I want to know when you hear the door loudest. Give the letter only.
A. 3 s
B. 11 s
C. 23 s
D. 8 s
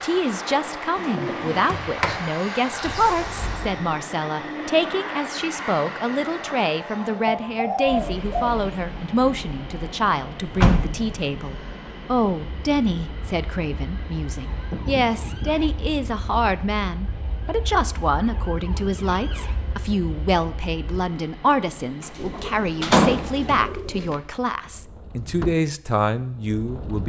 C.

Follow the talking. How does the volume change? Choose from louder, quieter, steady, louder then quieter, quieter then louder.
steady.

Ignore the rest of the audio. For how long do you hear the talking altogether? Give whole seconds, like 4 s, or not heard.
27 s.